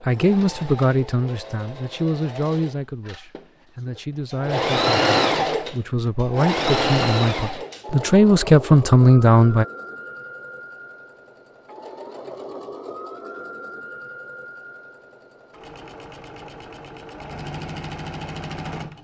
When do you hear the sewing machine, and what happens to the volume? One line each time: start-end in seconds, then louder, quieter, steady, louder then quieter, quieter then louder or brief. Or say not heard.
0.0-18.9 louder then quieter.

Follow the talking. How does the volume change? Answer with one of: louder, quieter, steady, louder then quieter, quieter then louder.
quieter then louder.